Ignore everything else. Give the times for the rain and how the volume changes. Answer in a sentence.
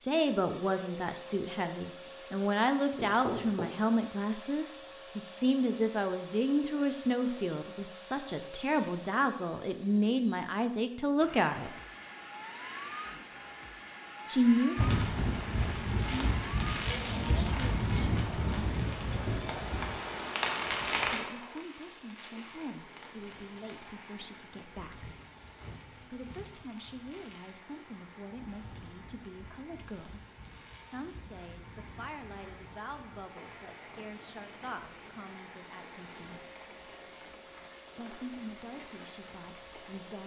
The rain can be heard from 14.8 to 40.2 s, getting quieter.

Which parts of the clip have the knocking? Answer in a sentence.
You can hear the knocking from 3.0 to 3.7 s.